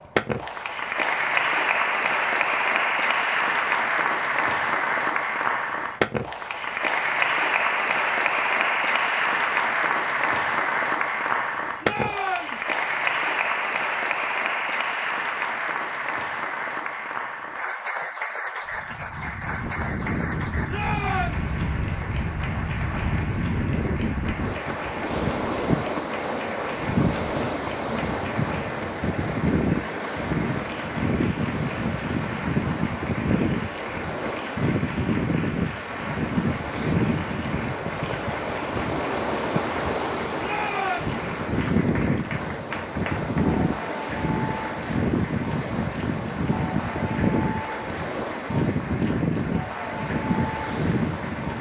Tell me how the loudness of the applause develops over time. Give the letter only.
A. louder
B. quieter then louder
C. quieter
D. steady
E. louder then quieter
C.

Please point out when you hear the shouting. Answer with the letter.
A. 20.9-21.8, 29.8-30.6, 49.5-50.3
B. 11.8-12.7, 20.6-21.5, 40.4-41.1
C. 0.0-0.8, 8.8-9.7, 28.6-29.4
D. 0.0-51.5
B.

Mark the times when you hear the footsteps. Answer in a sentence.
The footsteps can't be heard in this clip.